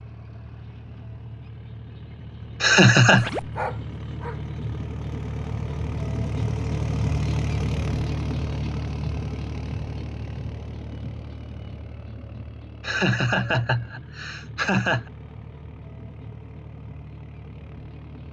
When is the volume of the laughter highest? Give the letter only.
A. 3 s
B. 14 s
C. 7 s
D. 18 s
A.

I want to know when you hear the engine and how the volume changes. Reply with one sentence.
The engine can be heard from 0.0 to 18.2 s, getting louder then quieter.